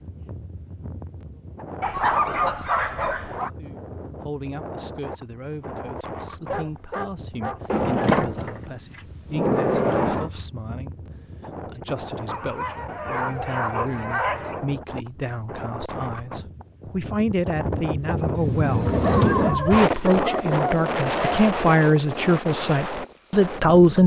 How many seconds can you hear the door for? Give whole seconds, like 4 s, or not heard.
4 s.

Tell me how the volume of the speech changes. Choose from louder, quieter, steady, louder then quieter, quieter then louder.
louder.